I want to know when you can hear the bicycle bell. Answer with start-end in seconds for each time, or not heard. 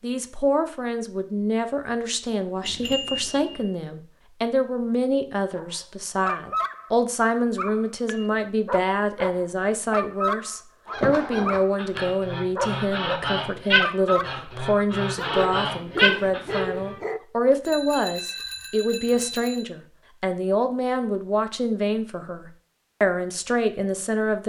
2.6-3.6, 17.6-19.6.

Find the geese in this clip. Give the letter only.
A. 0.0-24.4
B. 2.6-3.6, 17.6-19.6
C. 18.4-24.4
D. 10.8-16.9
D.